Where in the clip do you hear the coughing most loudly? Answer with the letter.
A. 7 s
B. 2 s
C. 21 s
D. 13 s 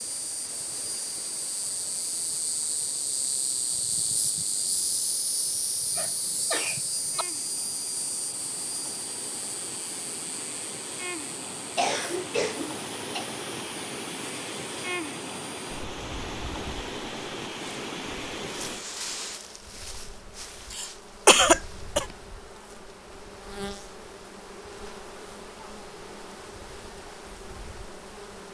C.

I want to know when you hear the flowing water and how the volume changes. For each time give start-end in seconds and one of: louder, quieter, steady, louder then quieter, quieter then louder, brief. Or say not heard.
0.0-19.4 louder.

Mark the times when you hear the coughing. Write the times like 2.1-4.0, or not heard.
6.0-7.2, 11.8-13.2, 20.7-22.1.